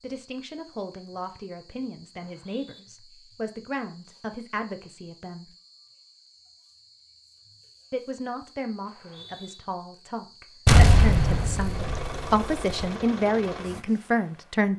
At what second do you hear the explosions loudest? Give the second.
11 s.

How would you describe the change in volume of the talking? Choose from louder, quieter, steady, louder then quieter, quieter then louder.
louder.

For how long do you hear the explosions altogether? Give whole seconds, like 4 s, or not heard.
2 s.